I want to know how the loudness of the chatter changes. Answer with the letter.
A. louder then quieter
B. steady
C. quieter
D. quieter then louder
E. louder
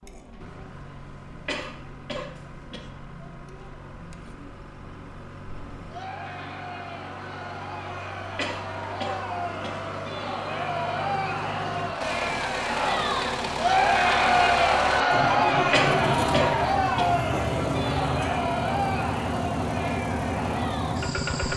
A.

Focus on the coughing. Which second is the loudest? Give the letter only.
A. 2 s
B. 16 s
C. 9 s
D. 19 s
B.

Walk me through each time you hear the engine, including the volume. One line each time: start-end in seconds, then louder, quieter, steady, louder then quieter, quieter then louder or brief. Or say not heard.
0.2-21.5 louder.